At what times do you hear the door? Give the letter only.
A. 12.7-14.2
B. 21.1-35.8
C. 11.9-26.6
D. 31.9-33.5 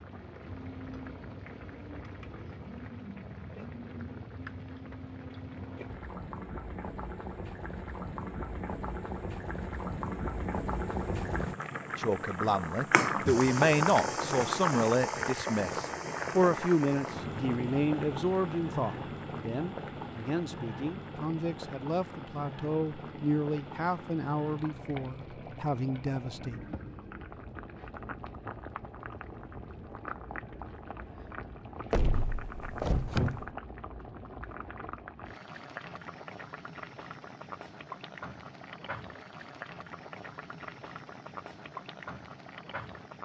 D.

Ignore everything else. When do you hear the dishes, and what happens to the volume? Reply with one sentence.
The dishes can't be heard in this clip.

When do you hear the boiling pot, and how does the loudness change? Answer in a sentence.
The boiling pot can be heard from 0.0 to 43.2 s, getting louder then quieter.